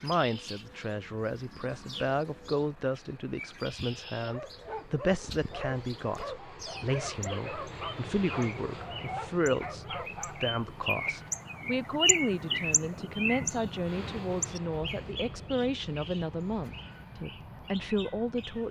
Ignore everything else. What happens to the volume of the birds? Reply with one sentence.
The volume of the birds goes up, then down.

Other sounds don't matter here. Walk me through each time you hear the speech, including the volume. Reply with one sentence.
You can hear the speech from 0.0 to 18.6 s, at a steady volume.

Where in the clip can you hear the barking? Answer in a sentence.
You can hear the barking from 4.2 to 10.6 s.